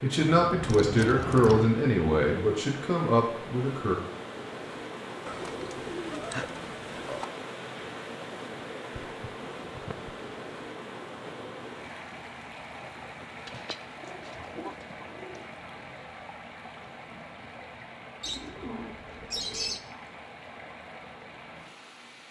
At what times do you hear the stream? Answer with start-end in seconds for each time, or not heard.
0.0-22.2.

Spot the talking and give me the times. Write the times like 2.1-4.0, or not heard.
0.0-4.0.